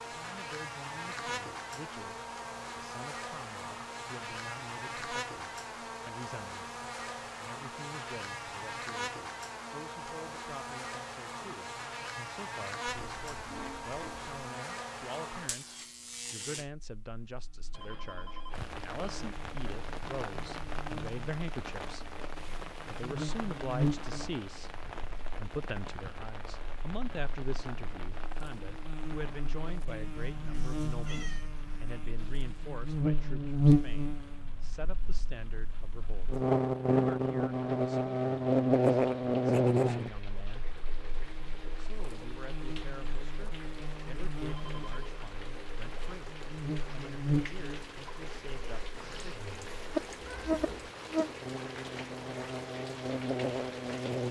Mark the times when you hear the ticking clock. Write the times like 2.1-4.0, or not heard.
not heard.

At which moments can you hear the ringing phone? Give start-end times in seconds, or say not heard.
17.7-18.6, 44.5-45.1.